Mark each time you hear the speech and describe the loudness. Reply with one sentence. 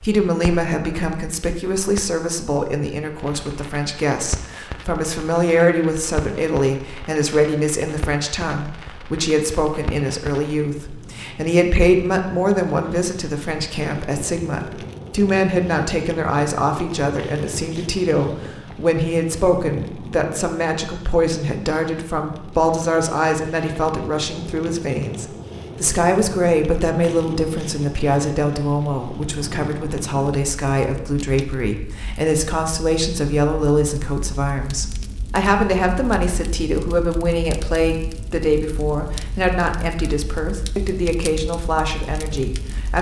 You can hear the speech from 0.0 to 42.9 s, at a steady volume.